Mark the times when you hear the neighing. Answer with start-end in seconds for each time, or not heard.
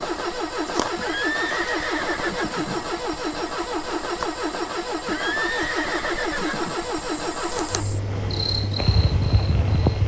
0.9-2.9, 5.0-6.8.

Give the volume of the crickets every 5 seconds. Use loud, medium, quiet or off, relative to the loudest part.
medium, loud.